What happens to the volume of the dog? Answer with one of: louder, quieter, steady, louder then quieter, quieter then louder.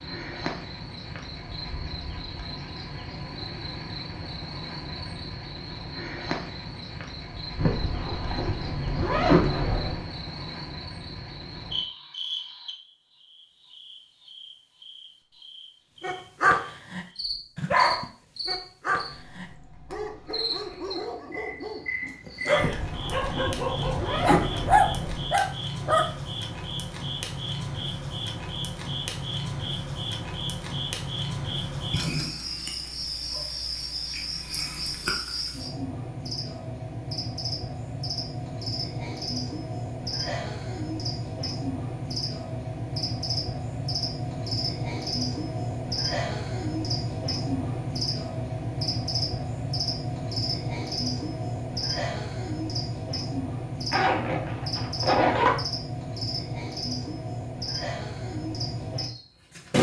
quieter then louder.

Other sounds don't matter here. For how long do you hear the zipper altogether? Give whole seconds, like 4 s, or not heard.
7 s.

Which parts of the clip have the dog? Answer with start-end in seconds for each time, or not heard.
16.0-26.1.